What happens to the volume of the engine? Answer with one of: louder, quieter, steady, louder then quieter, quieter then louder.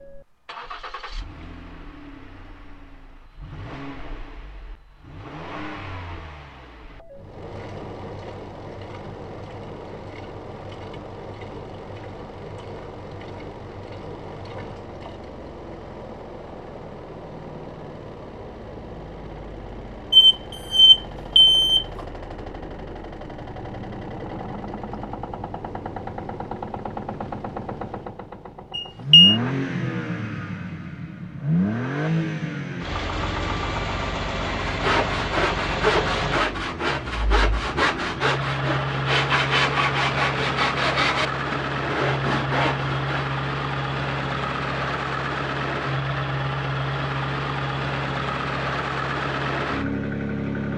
louder.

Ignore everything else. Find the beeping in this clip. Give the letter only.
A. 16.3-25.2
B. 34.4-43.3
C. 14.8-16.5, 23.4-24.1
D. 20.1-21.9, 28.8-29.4
D.